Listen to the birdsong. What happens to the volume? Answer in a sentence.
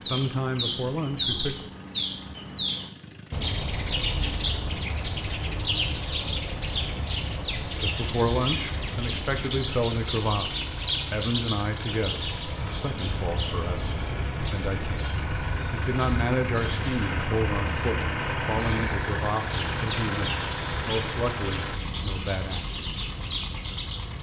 The loudness of the birdsong goes down.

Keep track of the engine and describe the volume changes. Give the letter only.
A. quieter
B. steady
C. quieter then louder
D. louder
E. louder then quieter
D.